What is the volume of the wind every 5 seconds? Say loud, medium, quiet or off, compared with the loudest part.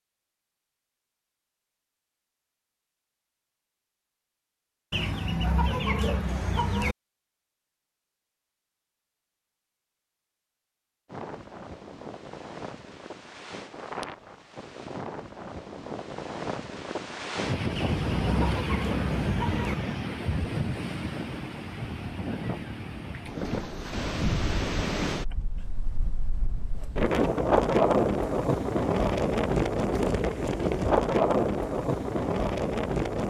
off, off, quiet, medium, medium, loud, loud.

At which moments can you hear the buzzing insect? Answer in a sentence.
You can't hear the buzzing insect here.